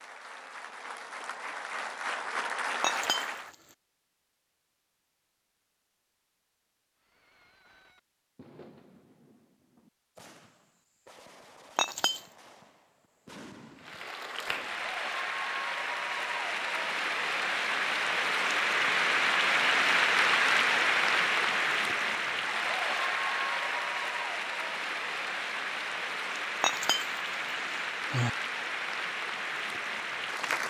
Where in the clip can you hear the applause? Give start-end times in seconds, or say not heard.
0.0-3.5, 13.8-30.6.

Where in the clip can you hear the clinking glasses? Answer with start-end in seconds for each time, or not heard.
2.8-3.5, 11.8-12.2, 26.6-28.3.